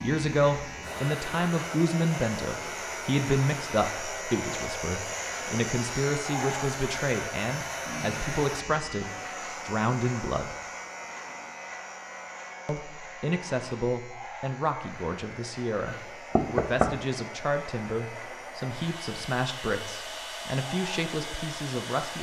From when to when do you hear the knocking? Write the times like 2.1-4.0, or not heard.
15.8-17.1.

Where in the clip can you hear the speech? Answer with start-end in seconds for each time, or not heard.
0.0-10.6, 12.7-22.1.